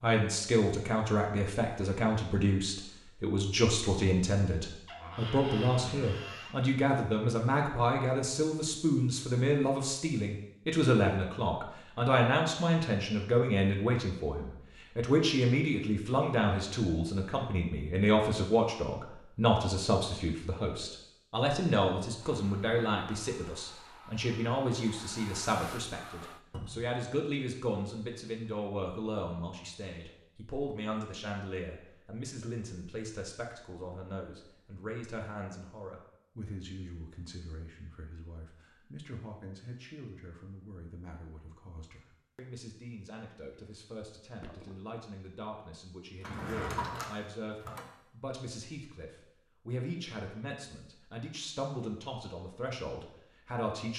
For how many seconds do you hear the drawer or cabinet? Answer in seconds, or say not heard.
4 s.